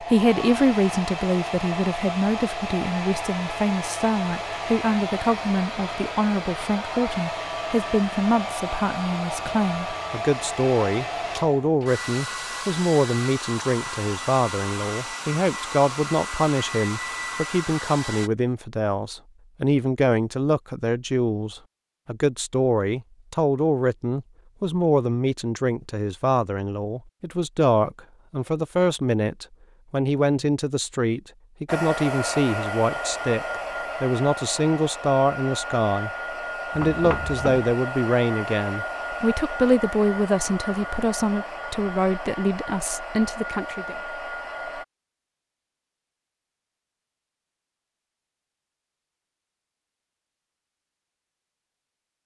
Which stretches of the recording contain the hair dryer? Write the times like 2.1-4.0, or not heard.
0.0-18.3, 31.6-44.9.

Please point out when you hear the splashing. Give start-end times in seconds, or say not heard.
not heard.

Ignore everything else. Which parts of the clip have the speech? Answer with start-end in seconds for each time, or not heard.
0.0-36.1, 36.8-44.0.